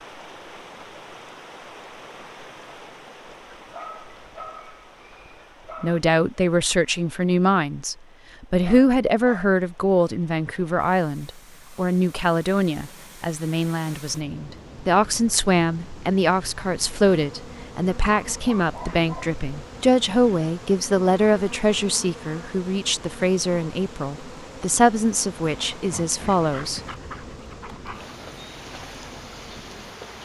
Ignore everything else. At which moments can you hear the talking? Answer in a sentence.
You can hear the talking from 5.8 to 26.8 s.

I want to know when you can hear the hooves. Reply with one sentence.
The hooves can't be heard in this clip.